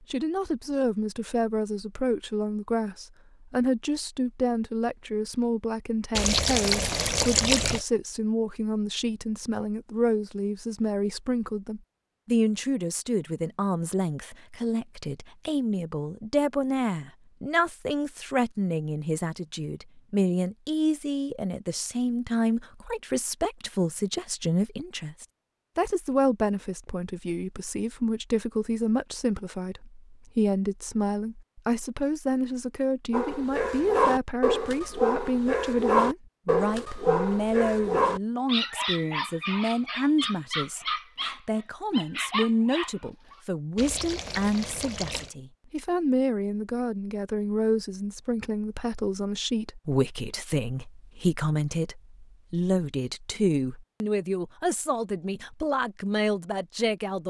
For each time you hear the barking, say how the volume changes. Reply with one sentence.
The barking can be heard from 33.1 to 43.4 s, getting quieter.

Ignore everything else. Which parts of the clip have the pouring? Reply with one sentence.
The pouring can be heard from 6.2 to 7.8 s and from 43.8 to 45.3 s.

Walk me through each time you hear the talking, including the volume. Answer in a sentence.
The talking can be heard from 0.1 to 57.2 s, at a steady volume.